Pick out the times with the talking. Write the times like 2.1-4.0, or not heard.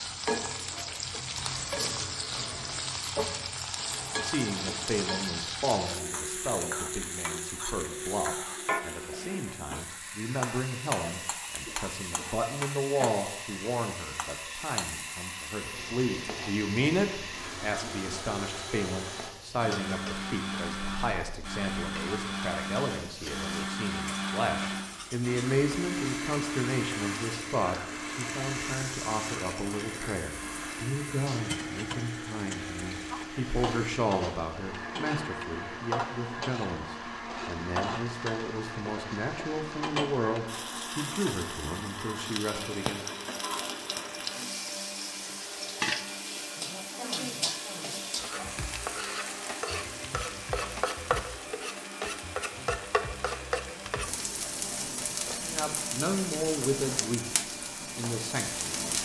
4.2-43.0, 55.4-59.0.